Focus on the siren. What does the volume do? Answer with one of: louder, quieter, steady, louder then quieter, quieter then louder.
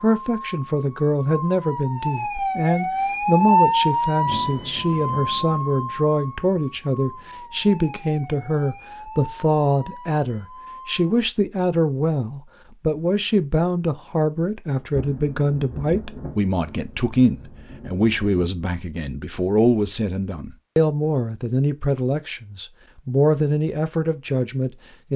louder then quieter.